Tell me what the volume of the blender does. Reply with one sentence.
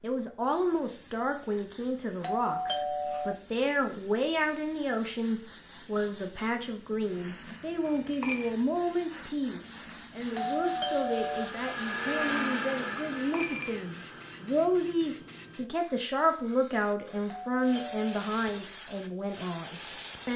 The loudness of the blender goes up, then down.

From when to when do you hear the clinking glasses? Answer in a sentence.
You can hear the clinking glasses from 7.8 to 8.5 s and from 13.2 to 13.8 s.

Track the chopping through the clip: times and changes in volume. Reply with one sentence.
The chopping can't be heard in this clip.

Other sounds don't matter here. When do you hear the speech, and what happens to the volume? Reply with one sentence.
You can hear the speech from 0.0 to 20.3 s, at a steady volume.